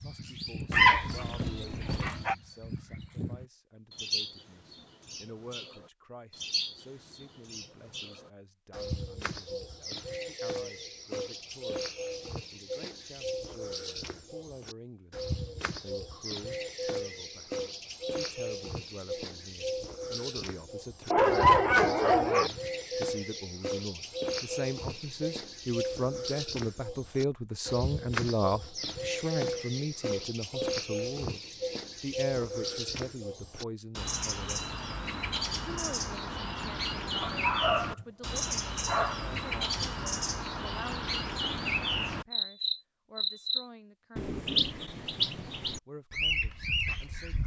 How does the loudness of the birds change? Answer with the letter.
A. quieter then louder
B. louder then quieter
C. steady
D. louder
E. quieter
D.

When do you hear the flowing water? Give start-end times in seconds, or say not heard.
not heard.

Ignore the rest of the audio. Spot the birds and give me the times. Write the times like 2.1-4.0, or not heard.
0.0-47.4.